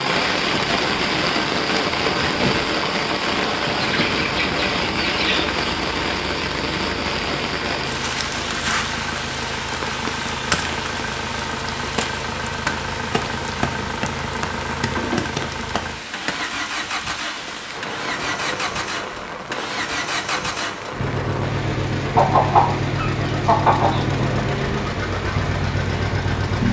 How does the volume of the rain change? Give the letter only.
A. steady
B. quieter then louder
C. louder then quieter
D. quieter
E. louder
D.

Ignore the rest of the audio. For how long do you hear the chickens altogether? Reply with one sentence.
The chickens can be heard for 4 seconds in total.